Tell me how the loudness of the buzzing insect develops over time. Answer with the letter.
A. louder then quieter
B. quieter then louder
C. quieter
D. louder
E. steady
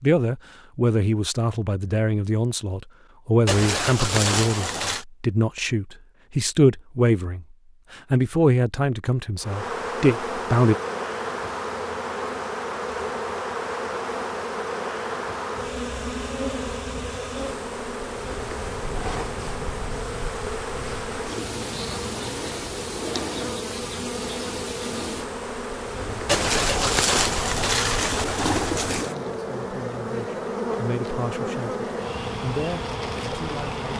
E.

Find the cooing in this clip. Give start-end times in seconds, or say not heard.
3.5-5.0, 26.2-29.1.